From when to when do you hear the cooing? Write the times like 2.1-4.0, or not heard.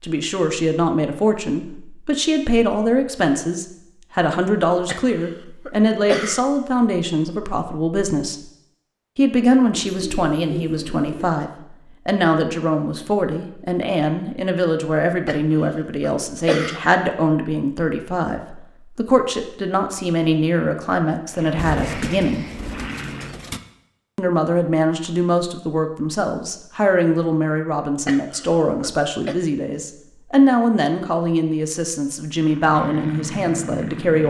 9.7-11.3, 21.6-23.6.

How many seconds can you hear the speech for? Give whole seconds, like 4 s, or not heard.
32 s.